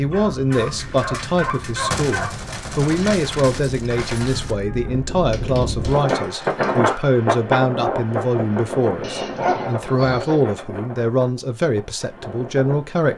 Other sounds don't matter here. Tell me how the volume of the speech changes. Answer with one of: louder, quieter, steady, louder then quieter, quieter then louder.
steady.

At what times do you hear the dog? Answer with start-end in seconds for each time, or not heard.
0.1-2.5, 5.3-7.0, 9.0-10.4.